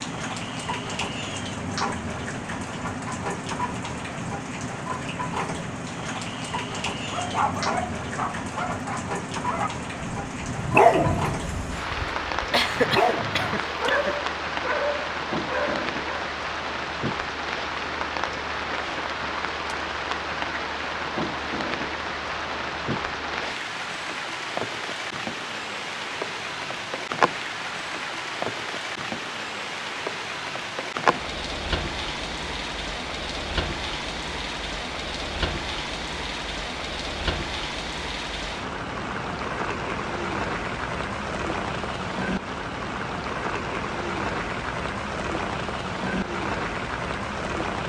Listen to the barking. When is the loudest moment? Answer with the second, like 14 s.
11 s.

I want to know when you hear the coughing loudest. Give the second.
13 s.